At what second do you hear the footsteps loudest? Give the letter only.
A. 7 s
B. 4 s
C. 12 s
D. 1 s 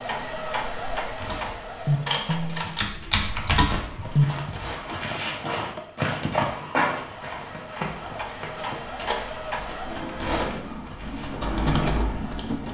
A.